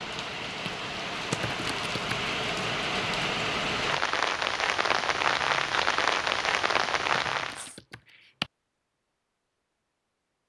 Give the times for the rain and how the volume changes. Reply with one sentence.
The rain can be heard from 0.0 to 7.8 s, getting louder.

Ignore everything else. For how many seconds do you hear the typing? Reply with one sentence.
The typing can be heard for 3 seconds in total.